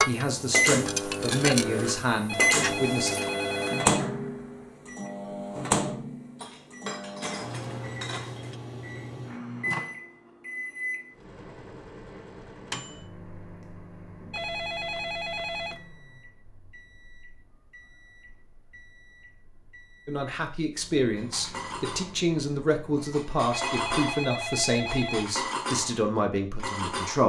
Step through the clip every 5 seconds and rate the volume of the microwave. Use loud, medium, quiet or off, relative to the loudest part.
loud, medium, quiet, quiet, quiet, off.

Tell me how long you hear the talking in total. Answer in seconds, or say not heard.
10 s.